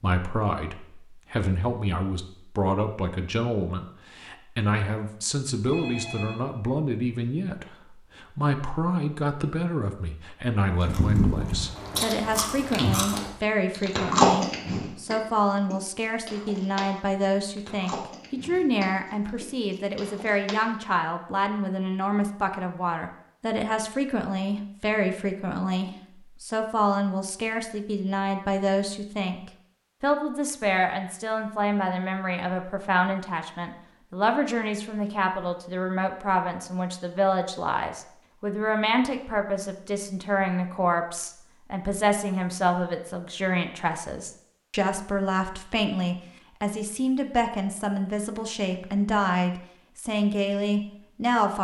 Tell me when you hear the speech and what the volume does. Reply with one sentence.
You can hear the speech from 0.0 to 51.5 s, at a steady volume.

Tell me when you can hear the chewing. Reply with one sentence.
The chewing can be heard from 10.8 to 20.7 s.